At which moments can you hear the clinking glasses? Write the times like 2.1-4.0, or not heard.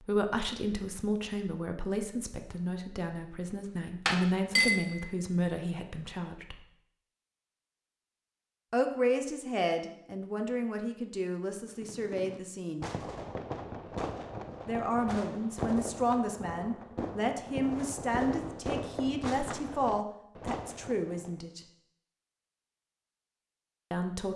4.0-5.0.